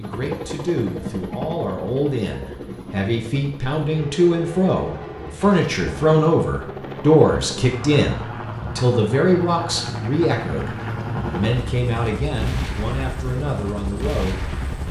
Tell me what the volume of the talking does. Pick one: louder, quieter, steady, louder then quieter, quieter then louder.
louder then quieter.